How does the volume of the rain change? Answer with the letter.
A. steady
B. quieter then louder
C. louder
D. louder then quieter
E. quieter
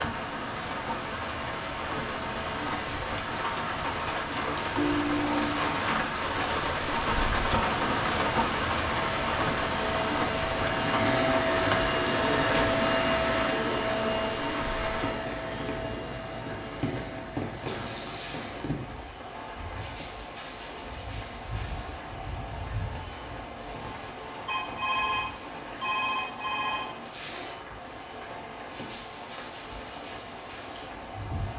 E.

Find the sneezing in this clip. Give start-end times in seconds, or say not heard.
not heard.